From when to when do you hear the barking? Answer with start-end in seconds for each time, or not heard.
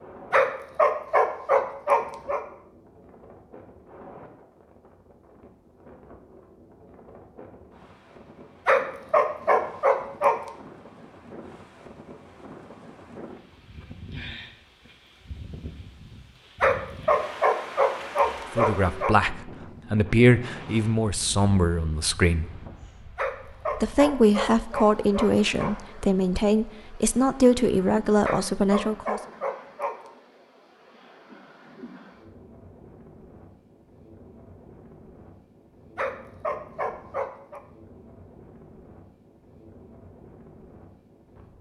0.3-2.4, 8.7-10.3, 16.6-19.1, 23.1-25.8, 28.2-29.9, 36.0-37.6.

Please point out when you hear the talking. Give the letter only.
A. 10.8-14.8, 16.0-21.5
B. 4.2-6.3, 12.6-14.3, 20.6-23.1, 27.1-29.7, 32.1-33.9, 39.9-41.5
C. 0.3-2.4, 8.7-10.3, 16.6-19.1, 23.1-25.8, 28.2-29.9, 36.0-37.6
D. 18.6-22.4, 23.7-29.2
D.